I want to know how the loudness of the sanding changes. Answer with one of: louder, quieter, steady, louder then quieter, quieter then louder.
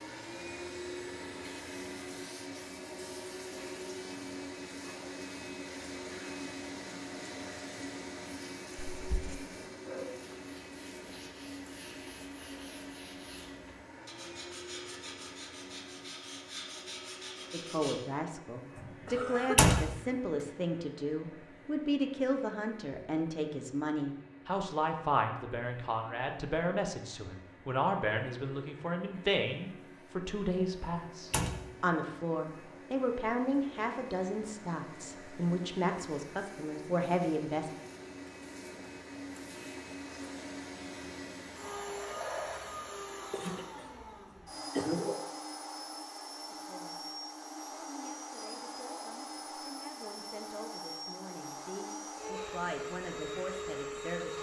louder.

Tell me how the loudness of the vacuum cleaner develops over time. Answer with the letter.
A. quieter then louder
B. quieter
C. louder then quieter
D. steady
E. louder
A.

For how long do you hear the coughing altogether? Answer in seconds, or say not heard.
3 s.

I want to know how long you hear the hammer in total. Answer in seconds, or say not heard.
not heard.